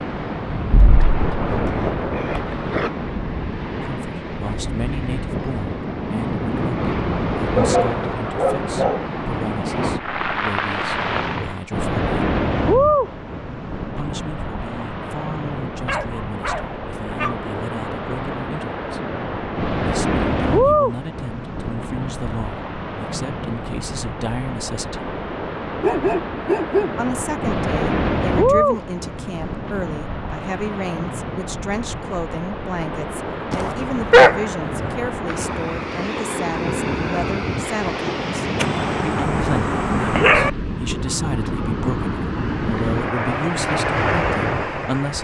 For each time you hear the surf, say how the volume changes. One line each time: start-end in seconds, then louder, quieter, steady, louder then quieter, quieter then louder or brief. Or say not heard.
0.0-45.1 steady.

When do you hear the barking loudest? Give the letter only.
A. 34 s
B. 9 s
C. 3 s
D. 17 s
A.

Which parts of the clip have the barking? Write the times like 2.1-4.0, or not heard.
0.7-2.9, 7.5-9.1, 15.8-17.4, 25.8-27.0, 33.5-35.0, 38.5-40.5.